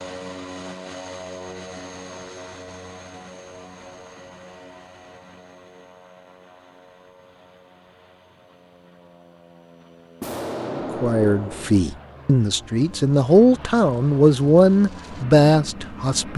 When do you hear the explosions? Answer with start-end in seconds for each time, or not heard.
10.2-11.8.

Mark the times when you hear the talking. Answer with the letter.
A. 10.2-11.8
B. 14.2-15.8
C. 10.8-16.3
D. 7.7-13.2
C.